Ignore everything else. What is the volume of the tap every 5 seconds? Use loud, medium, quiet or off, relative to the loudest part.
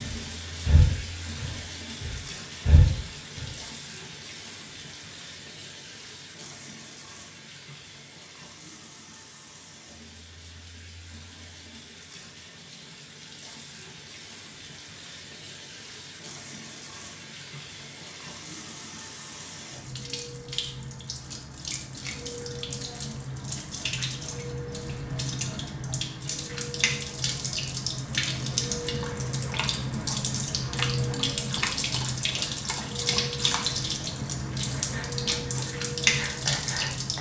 quiet, quiet, quiet, quiet, medium, loud, loud, loud.